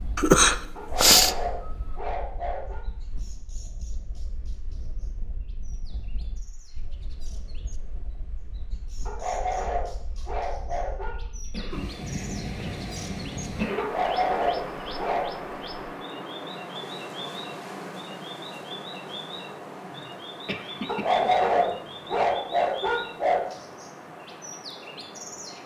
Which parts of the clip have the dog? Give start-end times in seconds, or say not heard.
0.8-2.9, 9.1-11.2, 13.8-15.4, 20.9-23.6.